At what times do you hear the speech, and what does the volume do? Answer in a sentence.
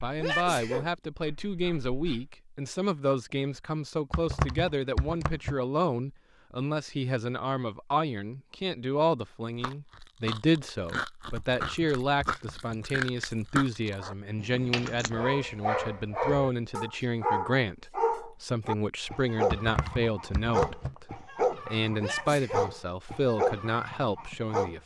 The speech can be heard from 0.0 to 24.8 s, at a steady volume.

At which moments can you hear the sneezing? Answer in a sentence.
You can hear the sneezing from 0.2 to 0.9 s and from 21.9 to 22.7 s.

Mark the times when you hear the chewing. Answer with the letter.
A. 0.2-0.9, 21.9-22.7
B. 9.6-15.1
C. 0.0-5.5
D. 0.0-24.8
B.